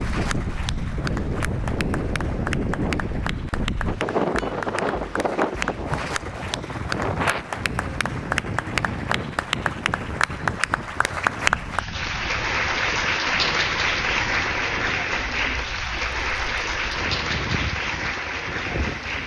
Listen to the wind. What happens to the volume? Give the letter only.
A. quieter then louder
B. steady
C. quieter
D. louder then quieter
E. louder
C.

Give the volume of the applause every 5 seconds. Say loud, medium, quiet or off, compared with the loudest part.
medium, medium, loud, loud.